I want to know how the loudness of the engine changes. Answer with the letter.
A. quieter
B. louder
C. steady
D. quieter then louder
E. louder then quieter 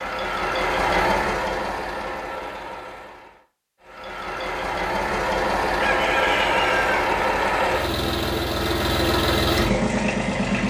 D.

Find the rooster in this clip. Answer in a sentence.
The rooster can be heard from 5.7 to 7.0 s.